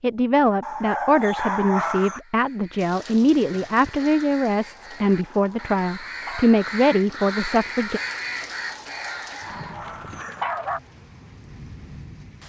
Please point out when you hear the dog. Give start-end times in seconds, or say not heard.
0.6-2.2, 4.7-6.6, 8.7-10.8.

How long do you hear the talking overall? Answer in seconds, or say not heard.
8 s.